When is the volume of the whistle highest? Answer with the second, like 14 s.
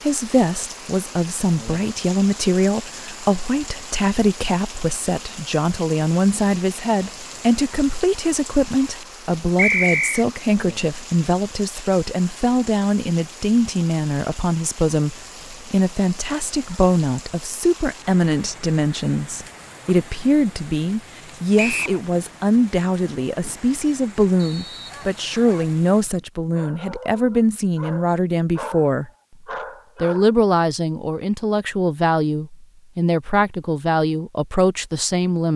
10 s.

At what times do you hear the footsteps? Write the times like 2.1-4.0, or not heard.
not heard.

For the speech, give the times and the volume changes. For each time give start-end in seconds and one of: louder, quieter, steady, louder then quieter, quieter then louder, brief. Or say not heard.
0.0-29.1 steady
30.0-35.5 steady.